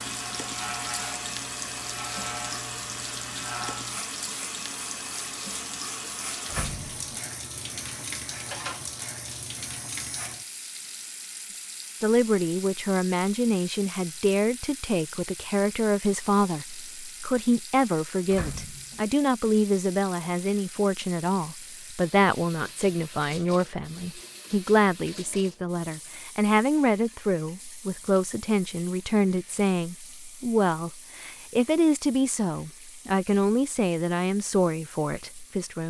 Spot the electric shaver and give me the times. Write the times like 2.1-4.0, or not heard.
0.0-10.5.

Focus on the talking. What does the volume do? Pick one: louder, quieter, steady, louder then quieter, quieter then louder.
steady.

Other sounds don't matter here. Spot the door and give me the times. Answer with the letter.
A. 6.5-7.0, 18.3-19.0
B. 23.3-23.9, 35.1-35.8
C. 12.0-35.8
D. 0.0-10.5
A.